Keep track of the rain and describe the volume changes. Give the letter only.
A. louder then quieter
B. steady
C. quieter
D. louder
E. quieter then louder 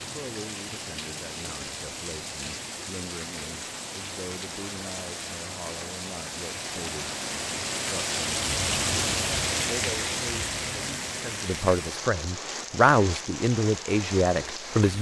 A.